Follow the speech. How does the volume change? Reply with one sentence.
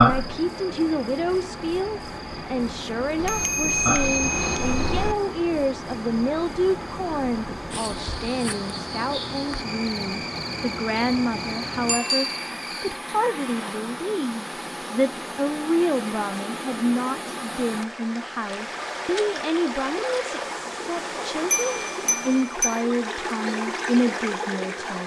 The loudness of the speech stays about the same.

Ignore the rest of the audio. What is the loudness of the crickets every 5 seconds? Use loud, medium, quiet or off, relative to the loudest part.
loud, medium, medium, off, off.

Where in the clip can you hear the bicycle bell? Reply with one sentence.
You can hear the bicycle bell from 3.1 to 5.2 s, from 11.8 to 12.4 s and from 21.5 to 22.9 s.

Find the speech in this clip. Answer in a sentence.
The speech can be heard from 0.0 to 25.0 s.